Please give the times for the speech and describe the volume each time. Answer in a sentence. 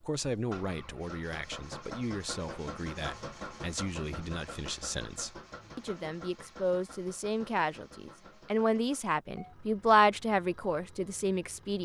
The speech can be heard from 0.0 to 11.8 s, getting louder.